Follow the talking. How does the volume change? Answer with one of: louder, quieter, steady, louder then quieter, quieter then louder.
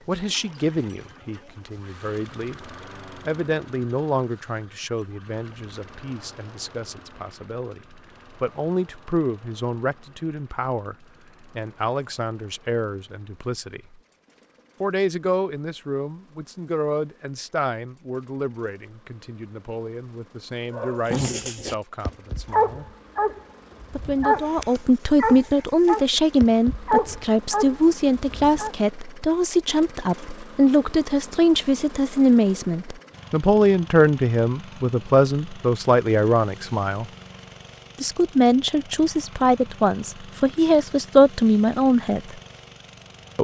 louder.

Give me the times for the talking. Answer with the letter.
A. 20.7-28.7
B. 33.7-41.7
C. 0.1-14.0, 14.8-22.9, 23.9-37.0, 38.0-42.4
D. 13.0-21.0
C.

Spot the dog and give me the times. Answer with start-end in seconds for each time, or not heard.
20.7-28.7.